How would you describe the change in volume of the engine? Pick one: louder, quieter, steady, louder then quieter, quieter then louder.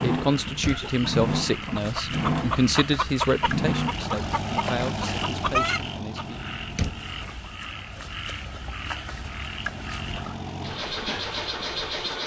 quieter then louder.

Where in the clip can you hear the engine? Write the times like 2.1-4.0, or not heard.
0.0-12.2.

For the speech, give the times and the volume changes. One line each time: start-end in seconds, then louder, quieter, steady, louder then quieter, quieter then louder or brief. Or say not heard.
0.0-6.4 quieter.